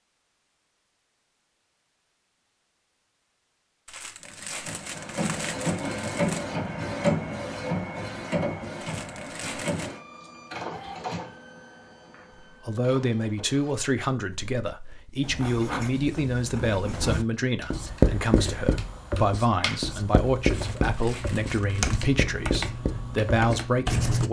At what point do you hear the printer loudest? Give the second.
7 s.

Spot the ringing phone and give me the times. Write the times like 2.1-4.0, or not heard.
not heard.